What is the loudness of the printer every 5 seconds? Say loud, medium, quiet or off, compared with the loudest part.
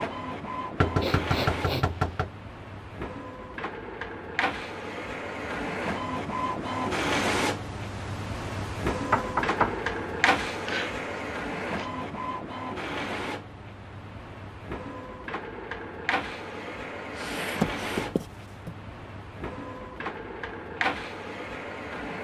medium, loud, loud, medium, loud.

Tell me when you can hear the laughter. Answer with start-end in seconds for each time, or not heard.
not heard.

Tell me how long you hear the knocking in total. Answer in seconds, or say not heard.
3 s.